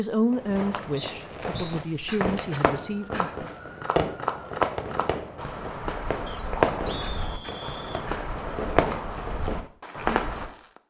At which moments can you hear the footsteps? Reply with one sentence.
The footsteps can be heard from 1.6 to 10.5 s.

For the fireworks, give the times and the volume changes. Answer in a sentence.
The fireworks can be heard from 0.3 to 10.6 s, getting louder.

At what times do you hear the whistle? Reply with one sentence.
The whistle can be heard from 0.9 to 1.8 s and from 6.2 to 8.1 s.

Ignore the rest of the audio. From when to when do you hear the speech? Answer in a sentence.
The speech can be heard from 0.0 to 3.5 s.